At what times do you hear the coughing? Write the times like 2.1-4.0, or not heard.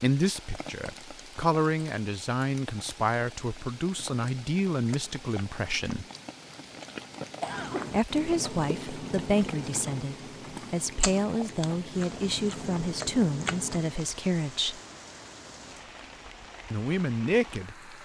6.7-8.0.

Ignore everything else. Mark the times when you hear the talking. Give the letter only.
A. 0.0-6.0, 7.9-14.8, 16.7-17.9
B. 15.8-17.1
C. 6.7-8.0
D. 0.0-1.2
A.